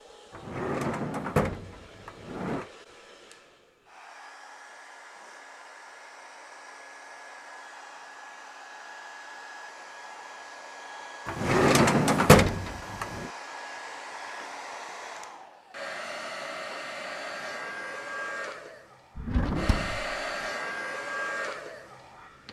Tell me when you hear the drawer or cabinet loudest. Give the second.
12 s.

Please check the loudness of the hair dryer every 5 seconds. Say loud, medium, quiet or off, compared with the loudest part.
quiet, medium, medium, loud, loud.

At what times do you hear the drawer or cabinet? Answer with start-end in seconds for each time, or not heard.
0.3-2.6, 11.2-13.3, 19.1-20.1.